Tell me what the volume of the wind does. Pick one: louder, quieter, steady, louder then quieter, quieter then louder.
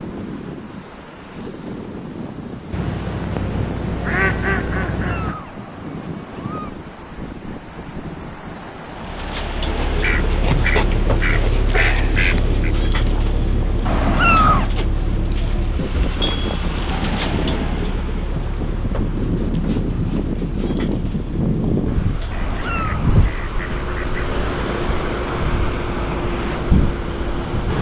louder.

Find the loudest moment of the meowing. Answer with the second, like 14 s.
14 s.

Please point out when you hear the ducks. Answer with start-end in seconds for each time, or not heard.
2.7-5.3, 9.8-12.8, 22.3-24.1.